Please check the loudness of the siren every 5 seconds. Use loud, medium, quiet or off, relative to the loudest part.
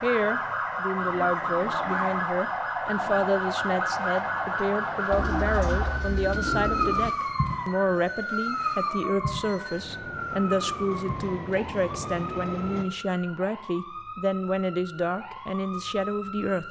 loud, loud, medium, medium.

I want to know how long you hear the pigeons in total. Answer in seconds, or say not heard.
2 s.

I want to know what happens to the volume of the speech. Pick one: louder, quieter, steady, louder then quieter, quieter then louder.
steady.